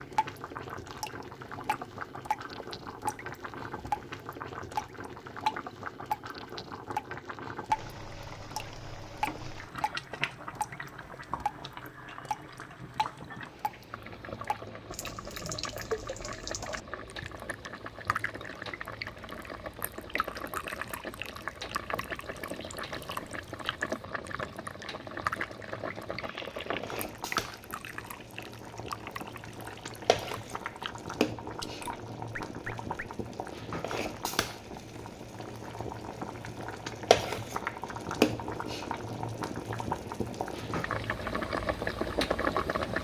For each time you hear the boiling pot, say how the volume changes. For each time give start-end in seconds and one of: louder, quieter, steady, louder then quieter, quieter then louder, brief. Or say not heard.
0.0-43.0 louder.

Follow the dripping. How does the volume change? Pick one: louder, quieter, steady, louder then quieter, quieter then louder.
quieter.